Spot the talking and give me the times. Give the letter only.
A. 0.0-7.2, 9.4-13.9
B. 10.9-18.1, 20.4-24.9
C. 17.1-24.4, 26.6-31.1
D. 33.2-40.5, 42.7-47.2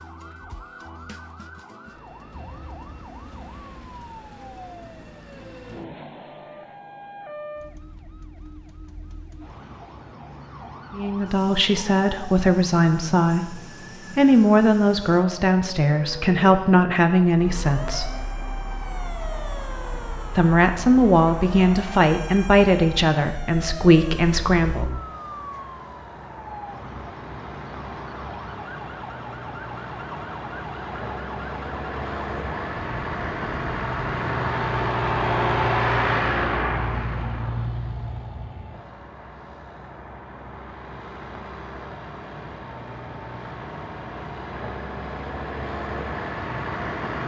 B.